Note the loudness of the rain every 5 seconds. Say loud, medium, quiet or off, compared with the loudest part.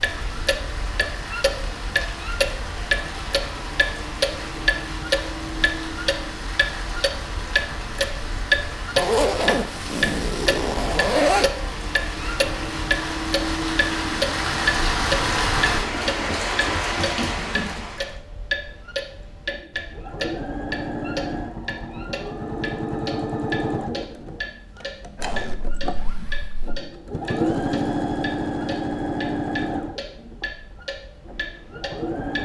medium, medium, loud, loud, off, off, off.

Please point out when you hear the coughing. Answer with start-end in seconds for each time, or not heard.
not heard.